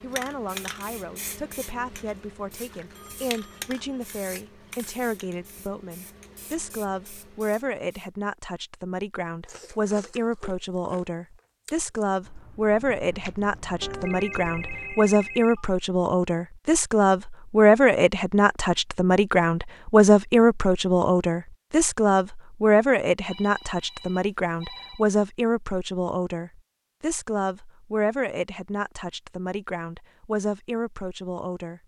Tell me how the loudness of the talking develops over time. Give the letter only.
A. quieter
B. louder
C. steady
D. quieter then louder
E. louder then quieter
E.